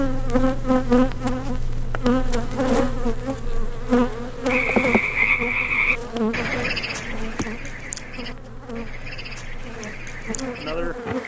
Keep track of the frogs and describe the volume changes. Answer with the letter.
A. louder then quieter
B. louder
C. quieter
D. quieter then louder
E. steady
C.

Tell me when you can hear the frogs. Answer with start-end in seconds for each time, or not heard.
4.5-11.2.